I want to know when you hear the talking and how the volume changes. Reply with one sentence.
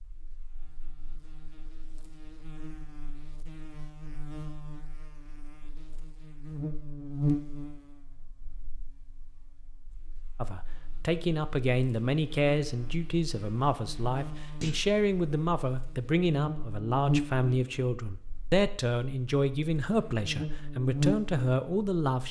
The talking can be heard from 10.4 to 22.2 s, at a steady volume.